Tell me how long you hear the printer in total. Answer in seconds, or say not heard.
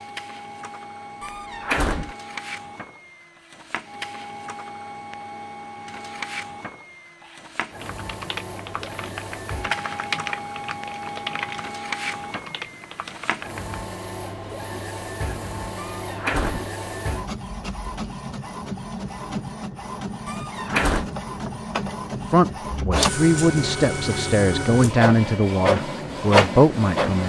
27 s.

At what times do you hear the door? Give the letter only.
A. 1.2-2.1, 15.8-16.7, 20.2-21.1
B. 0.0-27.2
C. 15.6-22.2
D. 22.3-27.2
A.